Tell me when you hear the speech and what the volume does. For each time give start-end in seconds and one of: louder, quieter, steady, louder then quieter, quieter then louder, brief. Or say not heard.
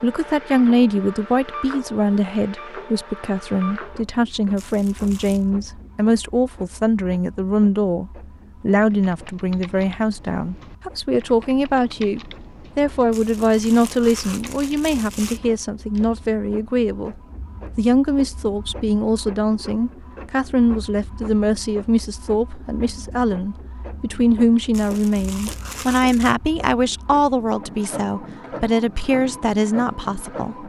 0.0-30.6 steady.